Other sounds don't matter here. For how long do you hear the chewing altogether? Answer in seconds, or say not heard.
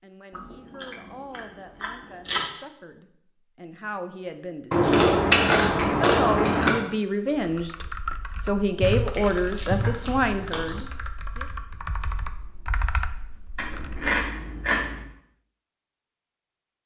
8 s.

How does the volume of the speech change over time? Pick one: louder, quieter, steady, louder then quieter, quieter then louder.
louder.